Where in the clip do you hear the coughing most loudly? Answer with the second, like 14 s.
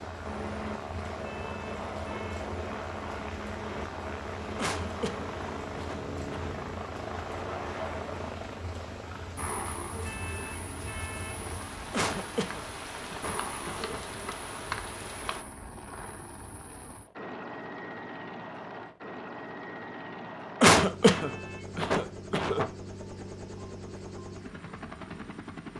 21 s.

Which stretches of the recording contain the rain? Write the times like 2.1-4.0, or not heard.
0.0-15.4.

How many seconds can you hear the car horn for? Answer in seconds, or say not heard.
3 s.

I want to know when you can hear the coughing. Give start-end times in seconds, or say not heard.
4.5-6.3, 11.9-14.0, 20.6-22.6.